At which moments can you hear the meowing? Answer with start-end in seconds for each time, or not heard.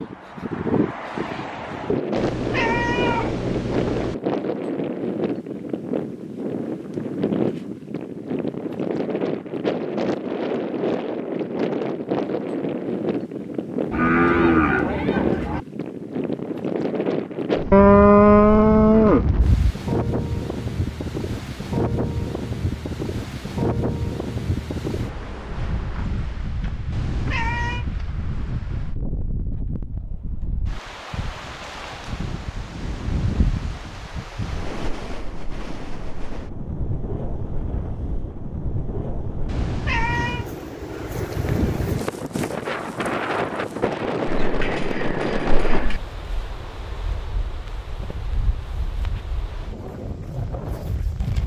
2.1-4.2, 26.9-27.9, 39.5-40.5.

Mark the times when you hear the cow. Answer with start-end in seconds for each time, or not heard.
13.9-15.6, 17.7-19.8, 44.2-46.0.